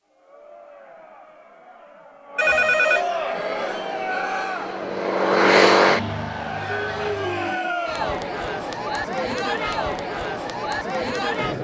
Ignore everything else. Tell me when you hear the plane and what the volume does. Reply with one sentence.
The plane can be heard from 3.3 to 7.6 s, getting louder then quieter.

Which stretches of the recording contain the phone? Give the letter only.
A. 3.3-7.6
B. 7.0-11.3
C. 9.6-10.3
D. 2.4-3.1
D.